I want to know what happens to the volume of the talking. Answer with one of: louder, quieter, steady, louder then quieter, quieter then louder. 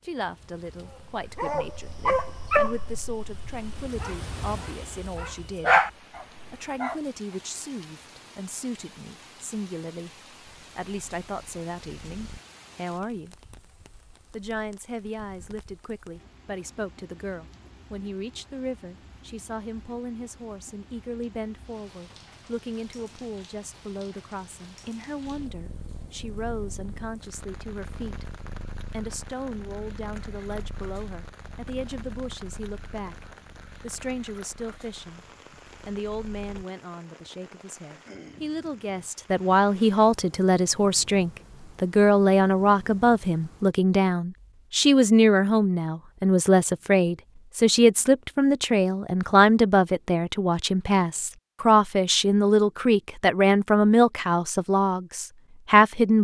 louder.